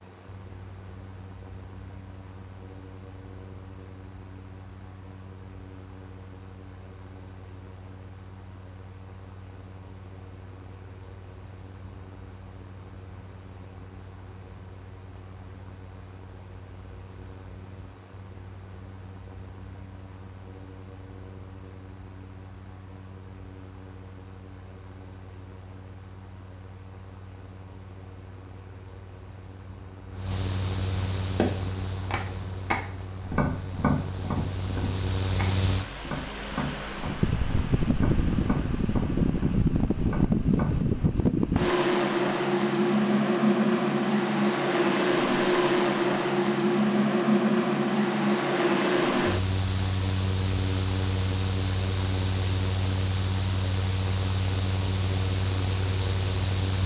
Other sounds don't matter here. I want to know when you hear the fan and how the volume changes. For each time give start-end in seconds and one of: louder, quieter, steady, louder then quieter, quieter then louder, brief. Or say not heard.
0.0-56.8 louder.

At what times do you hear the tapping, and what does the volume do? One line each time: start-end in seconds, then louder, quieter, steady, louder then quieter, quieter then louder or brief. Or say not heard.
31.4-41.0 quieter.